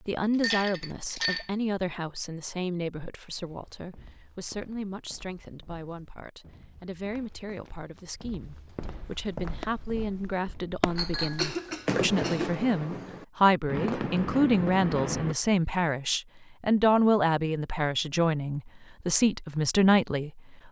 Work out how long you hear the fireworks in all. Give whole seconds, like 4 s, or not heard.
6 s.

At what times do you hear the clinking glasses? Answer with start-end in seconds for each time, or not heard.
0.4-1.5, 10.9-11.6.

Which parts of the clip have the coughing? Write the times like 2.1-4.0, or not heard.
11.2-12.6.